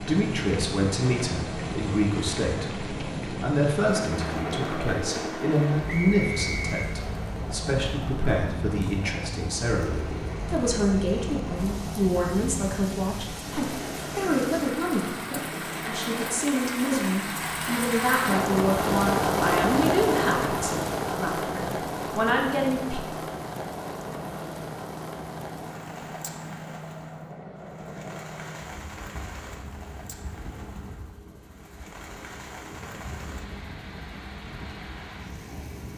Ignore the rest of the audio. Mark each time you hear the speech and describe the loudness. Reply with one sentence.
You can hear the speech from 0.0 to 23.0 s, at a steady volume.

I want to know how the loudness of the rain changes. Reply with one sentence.
The volume of the rain goes up, then down.